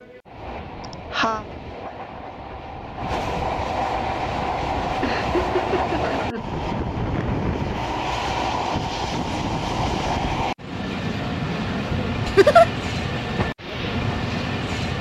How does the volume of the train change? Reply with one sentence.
The loudness of the train goes up.